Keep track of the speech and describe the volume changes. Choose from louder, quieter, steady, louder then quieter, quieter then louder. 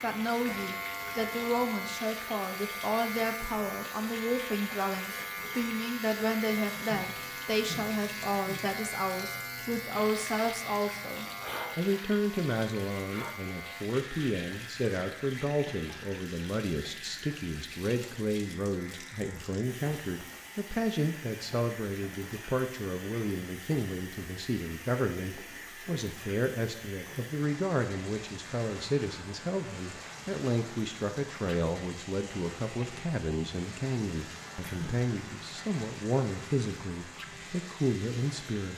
steady.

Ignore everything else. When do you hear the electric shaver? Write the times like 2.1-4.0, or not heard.
0.0-38.7.